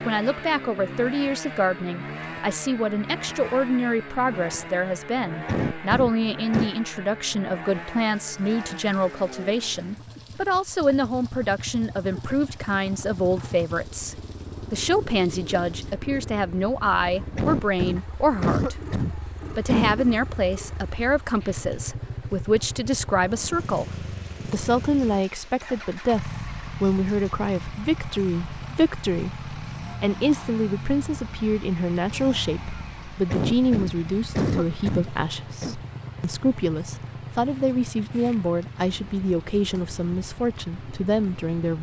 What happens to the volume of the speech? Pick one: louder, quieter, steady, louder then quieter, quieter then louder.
steady.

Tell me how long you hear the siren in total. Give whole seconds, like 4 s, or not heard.
not heard.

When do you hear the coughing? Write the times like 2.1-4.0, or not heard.
5.5-6.7, 17.4-20.1, 33.3-35.8.